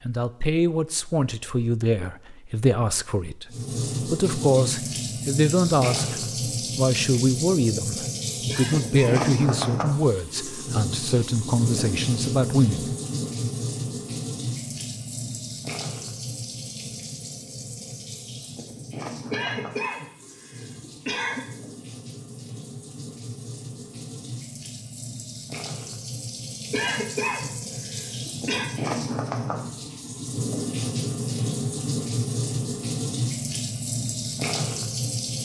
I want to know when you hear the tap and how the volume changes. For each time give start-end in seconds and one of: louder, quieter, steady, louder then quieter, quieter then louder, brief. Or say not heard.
3.5-35.3 quieter then louder.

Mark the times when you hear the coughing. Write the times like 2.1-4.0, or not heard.
8.4-9.2, 19.3-21.4, 26.7-28.7.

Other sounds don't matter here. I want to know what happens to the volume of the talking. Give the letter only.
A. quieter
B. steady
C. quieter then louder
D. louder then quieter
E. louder
B.